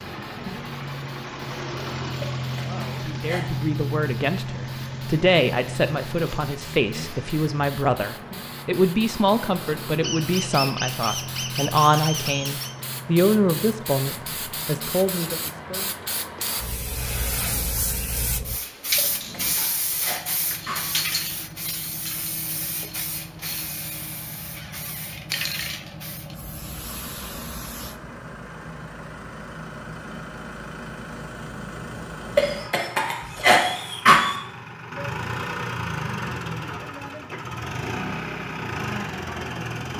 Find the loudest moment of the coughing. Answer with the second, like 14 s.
34 s.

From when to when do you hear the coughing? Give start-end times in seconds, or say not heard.
2.2-3.5, 18.9-20.9, 32.4-34.4.